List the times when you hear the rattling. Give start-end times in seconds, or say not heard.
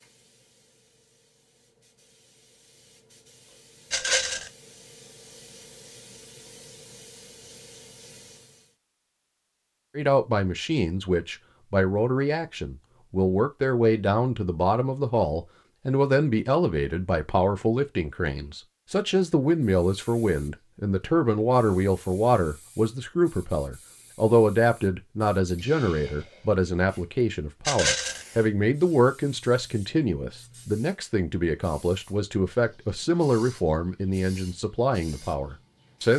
3.9-4.5, 27.6-28.2.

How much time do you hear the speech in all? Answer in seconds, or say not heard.
26 s.